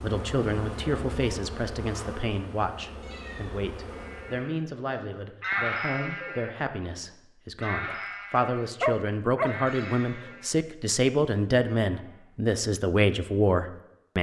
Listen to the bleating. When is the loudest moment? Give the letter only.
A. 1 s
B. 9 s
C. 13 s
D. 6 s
D.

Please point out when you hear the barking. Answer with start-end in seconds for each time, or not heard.
7.8-9.6.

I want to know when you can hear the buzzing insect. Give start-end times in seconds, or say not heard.
0.0-4.5.